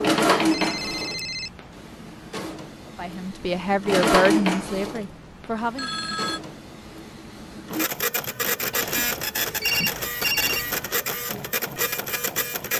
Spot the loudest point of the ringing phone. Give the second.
10 s.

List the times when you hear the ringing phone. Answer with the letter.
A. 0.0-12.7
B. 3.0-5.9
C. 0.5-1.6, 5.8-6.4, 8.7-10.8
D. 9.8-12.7
C.